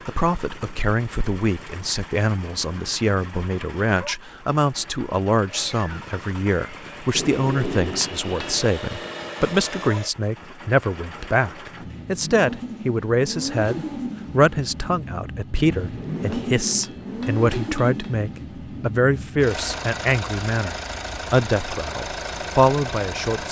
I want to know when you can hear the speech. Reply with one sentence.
The speech can be heard from 0.1 to 23.4 s.